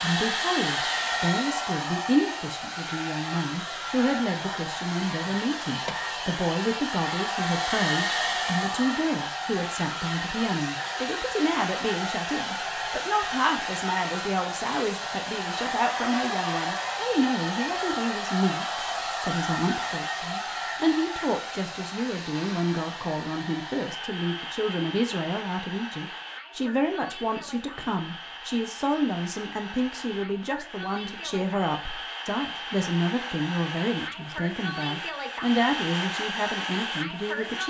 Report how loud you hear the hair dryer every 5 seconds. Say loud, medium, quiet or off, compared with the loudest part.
loud, loud, loud, loud, medium, medium, medium, loud.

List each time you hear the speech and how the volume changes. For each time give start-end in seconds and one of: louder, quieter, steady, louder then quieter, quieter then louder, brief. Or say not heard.
0.0-37.6 steady.